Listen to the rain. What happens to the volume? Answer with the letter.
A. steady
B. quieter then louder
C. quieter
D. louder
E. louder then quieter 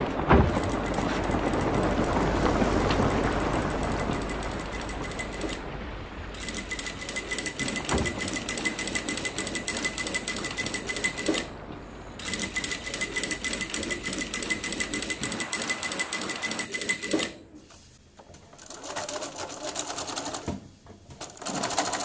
C.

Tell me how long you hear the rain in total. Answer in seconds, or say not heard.
17 s.